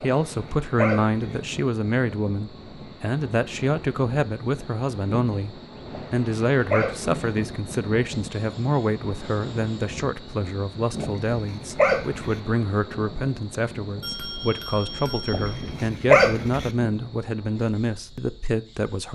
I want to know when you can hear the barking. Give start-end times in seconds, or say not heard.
0.0-1.4, 5.9-7.2, 11.0-12.4, 15.3-16.7.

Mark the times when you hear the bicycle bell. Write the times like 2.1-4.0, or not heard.
14.0-15.9.